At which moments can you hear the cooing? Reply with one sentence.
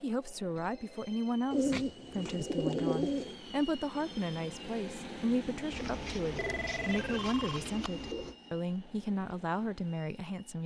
You can hear the cooing from 1.5 to 3.4 s and from 5.7 to 8.3 s.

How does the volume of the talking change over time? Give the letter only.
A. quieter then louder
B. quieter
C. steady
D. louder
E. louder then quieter
C.